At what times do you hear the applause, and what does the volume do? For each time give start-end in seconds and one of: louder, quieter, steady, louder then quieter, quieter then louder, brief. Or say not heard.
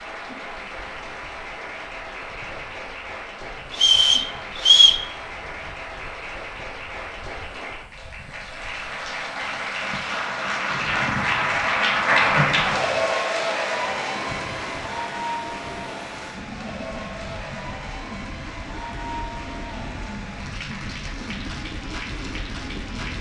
0.0-23.1 louder then quieter.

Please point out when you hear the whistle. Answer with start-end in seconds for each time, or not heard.
3.7-5.0.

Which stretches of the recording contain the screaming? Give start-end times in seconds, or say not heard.
not heard.